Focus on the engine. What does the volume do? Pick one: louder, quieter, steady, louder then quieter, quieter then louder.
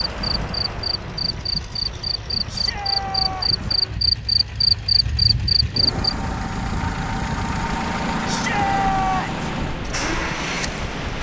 louder.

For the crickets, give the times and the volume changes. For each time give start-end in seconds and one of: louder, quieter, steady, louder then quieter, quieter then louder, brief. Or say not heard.
0.0-6.1 louder.